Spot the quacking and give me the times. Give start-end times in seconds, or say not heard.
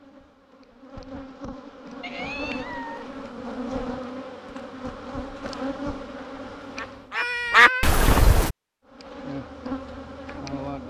6.6-8.6.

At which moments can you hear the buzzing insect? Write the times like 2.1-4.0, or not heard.
0.0-7.2, 8.8-10.8.